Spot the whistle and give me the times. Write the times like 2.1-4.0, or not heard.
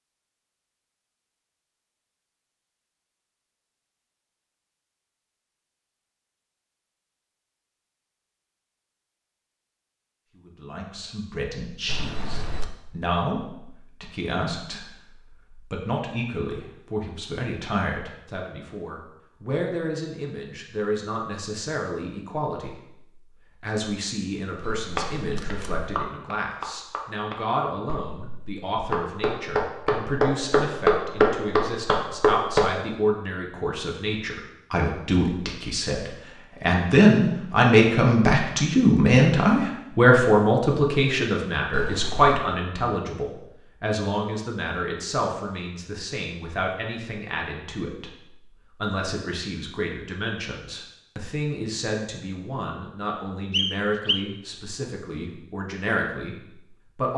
53.5-54.2.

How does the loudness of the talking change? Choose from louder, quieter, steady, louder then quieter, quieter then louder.
louder then quieter.